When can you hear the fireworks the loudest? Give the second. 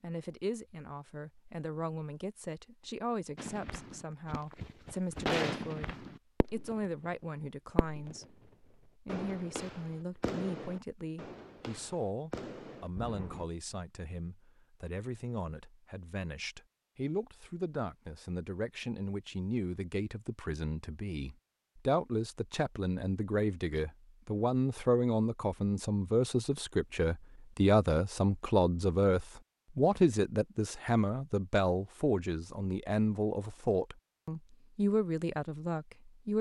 5 s.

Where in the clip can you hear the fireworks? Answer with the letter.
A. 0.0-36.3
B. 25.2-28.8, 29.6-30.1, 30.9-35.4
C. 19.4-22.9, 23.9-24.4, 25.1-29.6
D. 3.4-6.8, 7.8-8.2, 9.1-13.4
D.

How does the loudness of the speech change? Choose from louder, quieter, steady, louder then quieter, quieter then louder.
louder.